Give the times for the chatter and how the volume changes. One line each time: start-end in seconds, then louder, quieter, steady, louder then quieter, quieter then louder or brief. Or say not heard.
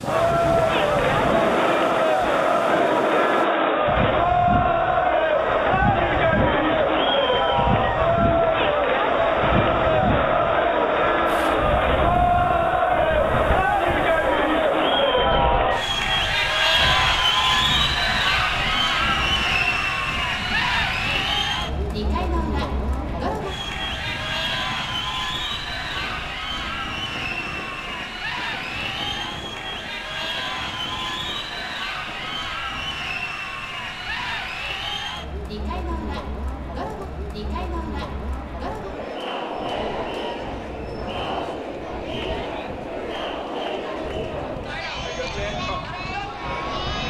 0.0-47.0 quieter.